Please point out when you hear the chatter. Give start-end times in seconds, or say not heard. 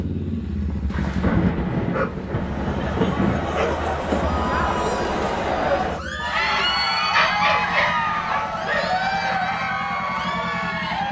2.2-11.0.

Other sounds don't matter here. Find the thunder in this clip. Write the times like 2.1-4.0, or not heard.
0.8-3.5.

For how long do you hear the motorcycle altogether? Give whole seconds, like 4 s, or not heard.
11 s.